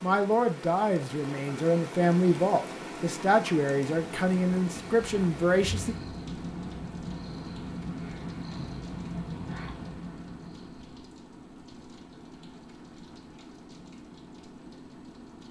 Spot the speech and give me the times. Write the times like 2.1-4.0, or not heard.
0.0-6.0.